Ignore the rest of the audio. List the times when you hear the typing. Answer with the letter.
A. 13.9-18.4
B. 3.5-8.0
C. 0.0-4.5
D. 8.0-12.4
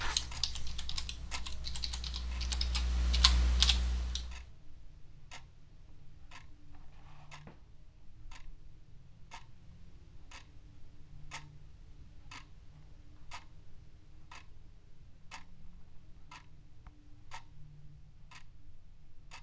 C.